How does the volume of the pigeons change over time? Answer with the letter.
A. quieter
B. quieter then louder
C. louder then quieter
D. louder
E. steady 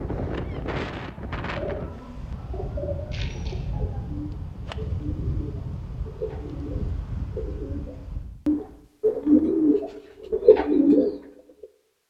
D.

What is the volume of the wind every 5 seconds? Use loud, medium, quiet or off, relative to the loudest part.
loud, loud, off.